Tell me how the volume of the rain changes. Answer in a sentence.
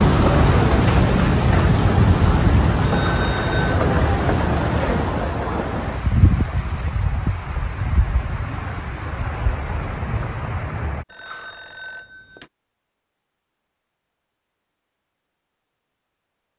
The loudness of the rain goes down.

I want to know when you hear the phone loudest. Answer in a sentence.
The loudest moment of the phone is at 3 seconds.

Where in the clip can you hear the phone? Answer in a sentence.
The phone can be heard from 2.8 to 3.8 s and from 11.1 to 12.5 s.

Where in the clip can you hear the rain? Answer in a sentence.
You can hear the rain from 0.0 to 11.1 s.